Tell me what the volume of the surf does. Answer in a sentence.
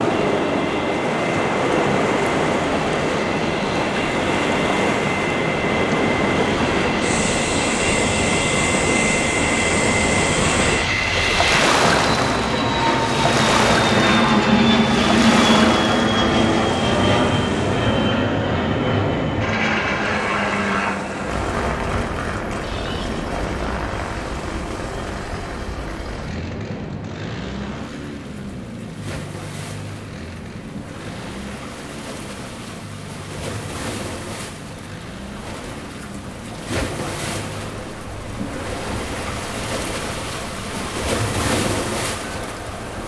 The volume of the surf goes down, then up.